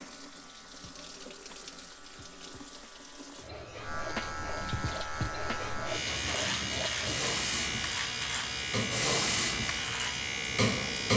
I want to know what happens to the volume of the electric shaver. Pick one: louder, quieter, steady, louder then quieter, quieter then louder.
louder.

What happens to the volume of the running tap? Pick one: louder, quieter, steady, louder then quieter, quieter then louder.
louder.